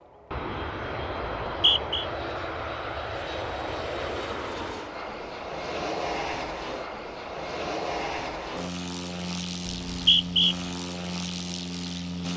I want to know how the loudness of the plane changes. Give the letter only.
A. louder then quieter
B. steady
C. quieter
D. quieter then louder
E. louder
B.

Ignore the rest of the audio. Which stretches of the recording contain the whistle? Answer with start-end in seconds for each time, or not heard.
1.2-2.0, 9.7-10.6.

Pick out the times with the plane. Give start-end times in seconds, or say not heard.
0.0-12.3.